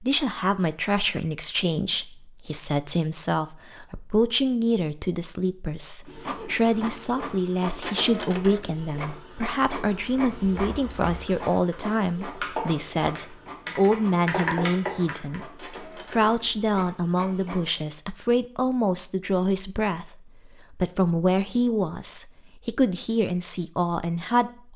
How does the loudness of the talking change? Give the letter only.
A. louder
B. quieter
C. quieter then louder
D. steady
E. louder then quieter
D.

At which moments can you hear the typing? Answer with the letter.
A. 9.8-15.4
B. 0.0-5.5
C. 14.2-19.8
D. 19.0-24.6
A.